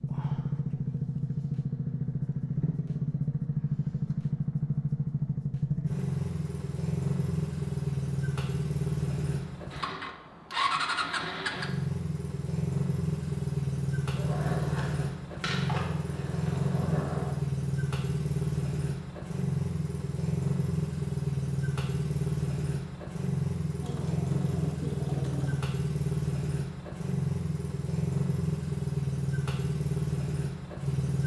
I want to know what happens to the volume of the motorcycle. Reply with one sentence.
The volume of the motorcycle stays about the same.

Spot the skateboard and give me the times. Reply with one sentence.
The skateboard can be heard from 14.1 to 17.4 s.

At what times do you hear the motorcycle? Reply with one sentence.
You can hear the motorcycle from 0.0 to 31.2 s.